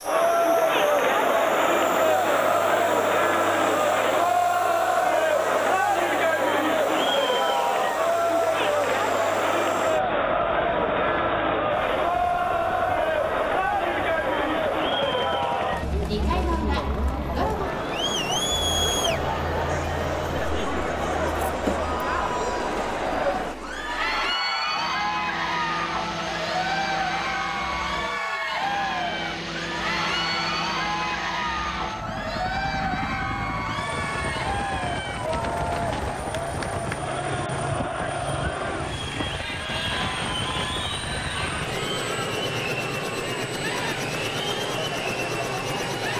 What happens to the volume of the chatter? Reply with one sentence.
The loudness of the chatter goes down.